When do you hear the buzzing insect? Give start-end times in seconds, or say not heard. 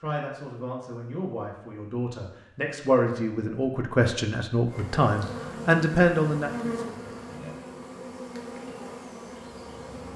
4.7-10.1.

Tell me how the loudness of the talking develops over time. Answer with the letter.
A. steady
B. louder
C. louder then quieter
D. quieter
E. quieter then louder
B.